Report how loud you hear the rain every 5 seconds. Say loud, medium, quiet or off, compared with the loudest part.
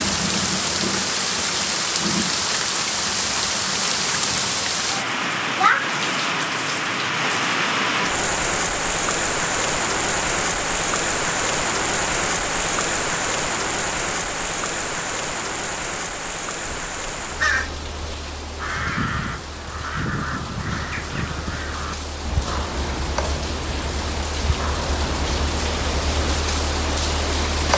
loud, loud, loud, medium, medium, loud.